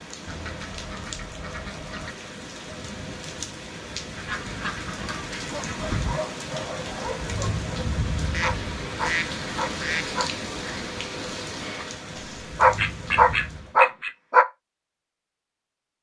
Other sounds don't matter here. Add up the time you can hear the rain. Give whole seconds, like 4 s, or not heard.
14 s.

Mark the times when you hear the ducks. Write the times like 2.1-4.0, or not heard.
0.2-2.1, 4.2-6.1, 8.3-10.2, 12.2-14.1.